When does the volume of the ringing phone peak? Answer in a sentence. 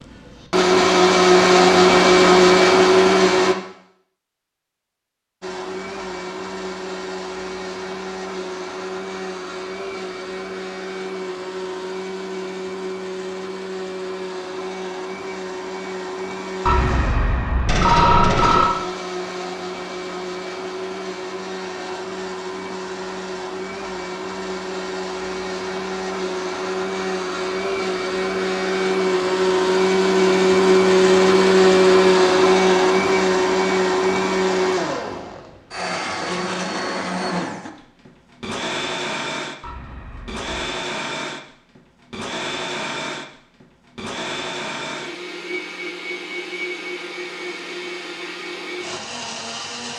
The loudest moment of the ringing phone is at 18 seconds.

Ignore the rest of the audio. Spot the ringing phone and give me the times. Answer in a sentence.
You can hear the ringing phone from 16.6 to 18.6 s and from 39.6 to 40.5 s.